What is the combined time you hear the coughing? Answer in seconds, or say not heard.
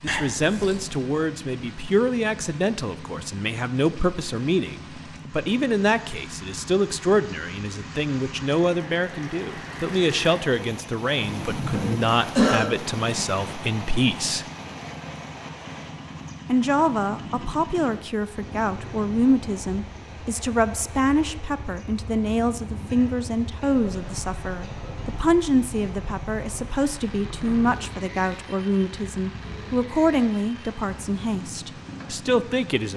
4 s.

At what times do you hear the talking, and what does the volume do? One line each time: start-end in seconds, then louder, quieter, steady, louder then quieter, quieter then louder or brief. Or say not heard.
0.0-14.4 steady
16.4-32.9 steady.